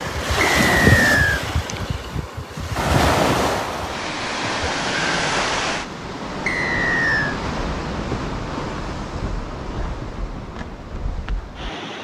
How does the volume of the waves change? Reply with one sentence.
The volume of the waves goes down.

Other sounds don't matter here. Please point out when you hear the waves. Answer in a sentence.
You can hear the waves from 0.0 to 12.0 s.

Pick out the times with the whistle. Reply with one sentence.
The whistle can be heard from 0.4 to 1.4 s and from 6.5 to 7.4 s.